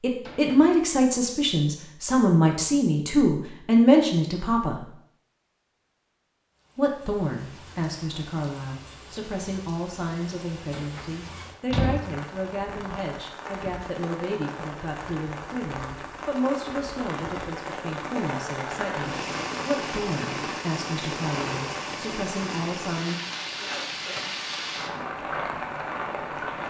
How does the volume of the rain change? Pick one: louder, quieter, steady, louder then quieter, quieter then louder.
louder.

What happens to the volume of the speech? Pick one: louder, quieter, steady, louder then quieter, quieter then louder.
quieter.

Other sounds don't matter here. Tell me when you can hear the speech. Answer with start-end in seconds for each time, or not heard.
0.0-4.9, 6.8-23.1.